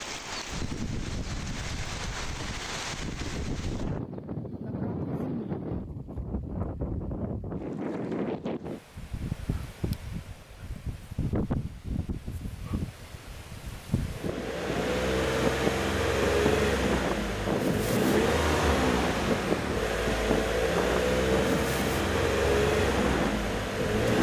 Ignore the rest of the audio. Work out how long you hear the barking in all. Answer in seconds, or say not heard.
not heard.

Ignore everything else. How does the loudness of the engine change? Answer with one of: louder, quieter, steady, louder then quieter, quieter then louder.
steady.